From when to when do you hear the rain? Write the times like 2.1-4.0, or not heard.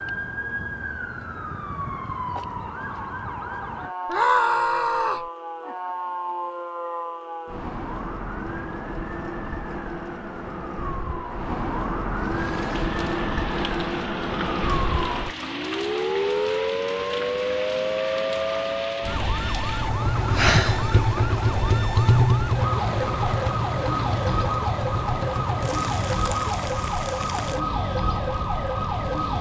12.2-29.3.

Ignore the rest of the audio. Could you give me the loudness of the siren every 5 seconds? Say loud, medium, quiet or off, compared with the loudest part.
medium, medium, loud, loud, loud, loud.